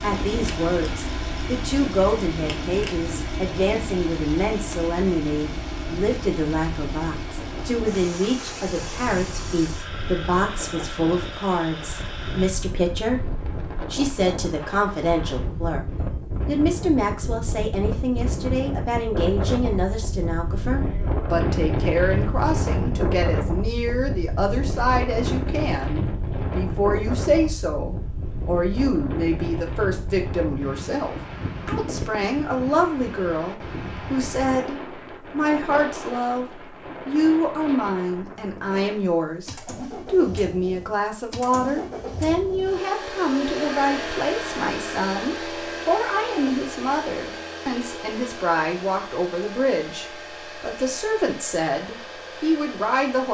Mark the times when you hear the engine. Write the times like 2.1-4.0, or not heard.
0.0-12.6, 39.0-53.2.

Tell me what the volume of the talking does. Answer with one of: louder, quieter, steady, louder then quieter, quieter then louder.
steady.